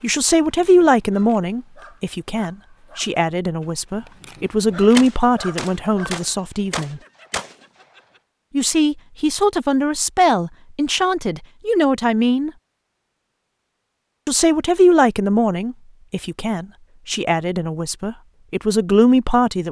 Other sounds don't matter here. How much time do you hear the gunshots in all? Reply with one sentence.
You can hear the gunshots for 3 seconds altogether.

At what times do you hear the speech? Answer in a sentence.
The speech can be heard from 0.0 to 7.0 s, from 8.5 to 12.5 s and from 14.2 to 19.6 s.